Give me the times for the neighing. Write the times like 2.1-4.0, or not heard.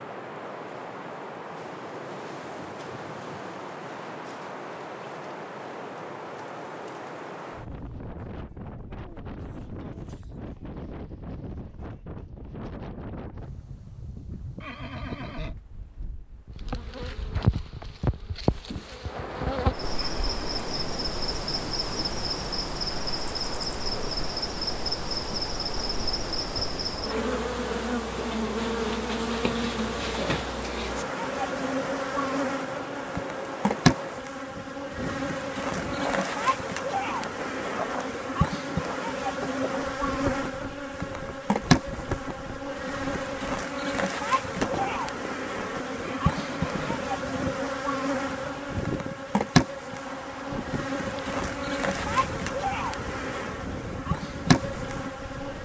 14.6-15.6, 19.9-21.0, 46.0-47.1.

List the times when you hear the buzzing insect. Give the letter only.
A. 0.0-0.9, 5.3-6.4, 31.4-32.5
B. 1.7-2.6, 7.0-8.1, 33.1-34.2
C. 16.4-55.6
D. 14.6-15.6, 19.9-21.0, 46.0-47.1
C.